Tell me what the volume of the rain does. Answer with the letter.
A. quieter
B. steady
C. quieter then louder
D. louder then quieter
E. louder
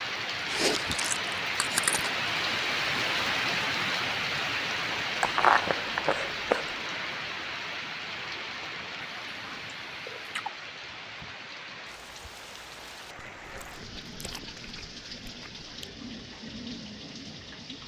A.